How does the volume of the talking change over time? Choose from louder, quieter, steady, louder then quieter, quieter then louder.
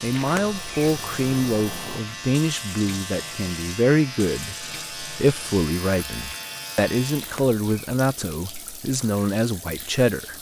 steady.